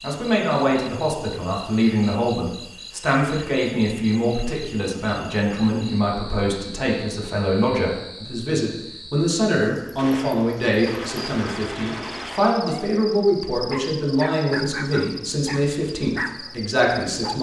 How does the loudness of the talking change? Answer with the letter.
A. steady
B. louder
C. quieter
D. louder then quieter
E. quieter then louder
A.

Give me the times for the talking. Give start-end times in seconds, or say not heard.
0.0-17.3.